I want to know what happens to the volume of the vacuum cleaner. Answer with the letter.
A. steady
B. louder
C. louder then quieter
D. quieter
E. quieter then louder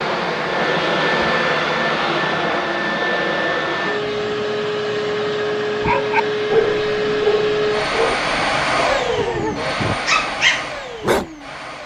D.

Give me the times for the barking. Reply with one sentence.
You can hear the barking from 5.8 to 11.2 s.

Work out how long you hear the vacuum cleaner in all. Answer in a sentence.
You can hear the vacuum cleaner for 12 seconds altogether.